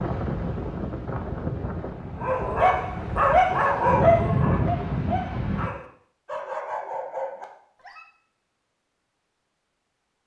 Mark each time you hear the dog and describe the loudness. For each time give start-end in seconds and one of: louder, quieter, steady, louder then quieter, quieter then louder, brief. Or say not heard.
2.1-8.1 quieter.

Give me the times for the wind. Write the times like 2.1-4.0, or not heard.
0.0-5.7.